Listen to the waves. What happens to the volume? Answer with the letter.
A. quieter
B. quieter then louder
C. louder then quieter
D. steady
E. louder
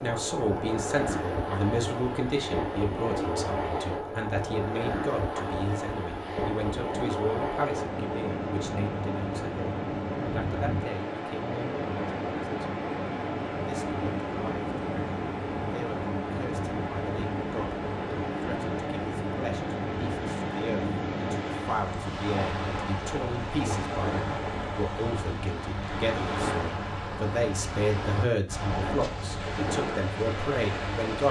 D.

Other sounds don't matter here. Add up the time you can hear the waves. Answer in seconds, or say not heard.
31 s.